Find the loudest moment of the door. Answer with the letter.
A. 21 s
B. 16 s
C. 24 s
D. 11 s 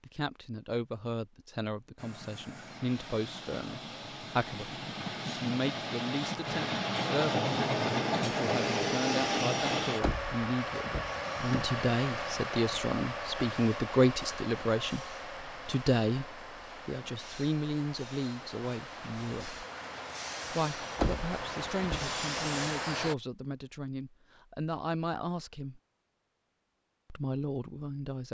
A.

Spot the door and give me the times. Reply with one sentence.
You can hear the door from 10.0 to 11.8 s and from 20.9 to 22.1 s.